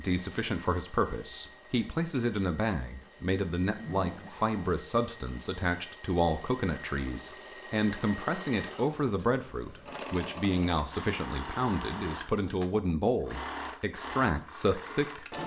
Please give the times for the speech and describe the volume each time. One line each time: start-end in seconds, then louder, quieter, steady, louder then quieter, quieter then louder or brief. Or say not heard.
0.0-15.2 steady.